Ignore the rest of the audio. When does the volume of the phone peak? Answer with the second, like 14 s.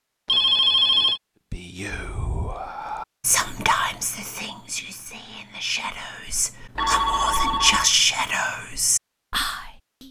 1 s.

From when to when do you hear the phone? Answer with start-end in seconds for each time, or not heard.
0.2-1.2, 6.8-7.9.